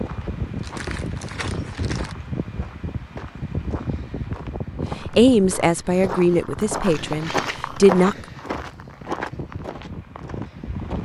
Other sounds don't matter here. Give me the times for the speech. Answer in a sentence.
The speech can be heard from 5.0 to 8.2 s.